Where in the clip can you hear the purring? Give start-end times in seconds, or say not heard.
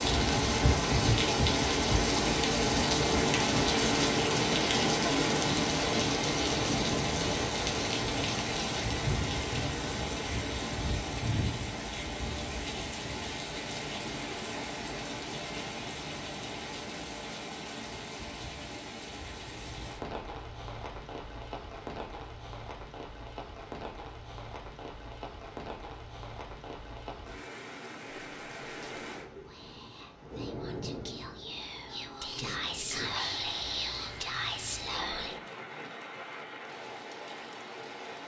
not heard.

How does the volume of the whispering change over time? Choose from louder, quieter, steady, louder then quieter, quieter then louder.
louder.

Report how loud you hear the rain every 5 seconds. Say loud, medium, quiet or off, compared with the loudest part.
loud, loud, medium, quiet, quiet, quiet, quiet, quiet.